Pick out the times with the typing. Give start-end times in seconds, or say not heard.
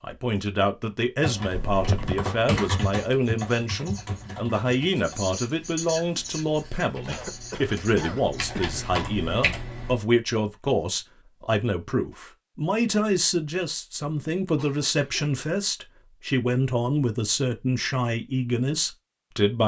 1.2-9.9.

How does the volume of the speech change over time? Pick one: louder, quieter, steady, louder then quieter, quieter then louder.
steady.